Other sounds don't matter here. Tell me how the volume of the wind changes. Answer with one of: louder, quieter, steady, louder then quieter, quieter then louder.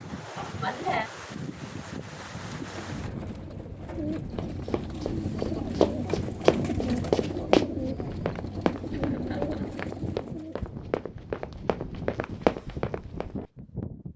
steady.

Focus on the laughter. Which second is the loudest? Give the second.
1 s.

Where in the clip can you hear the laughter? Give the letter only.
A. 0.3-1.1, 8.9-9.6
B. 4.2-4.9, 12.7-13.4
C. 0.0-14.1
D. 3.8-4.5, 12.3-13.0
A.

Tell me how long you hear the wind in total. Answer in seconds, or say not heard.
14 s.